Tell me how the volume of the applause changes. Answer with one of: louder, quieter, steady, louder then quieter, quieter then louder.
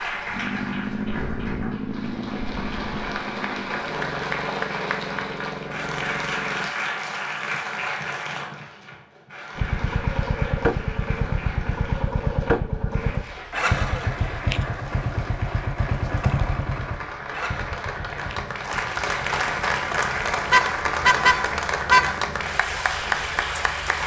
quieter then louder.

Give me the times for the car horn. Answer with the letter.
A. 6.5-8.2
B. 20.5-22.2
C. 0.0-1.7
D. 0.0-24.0
B.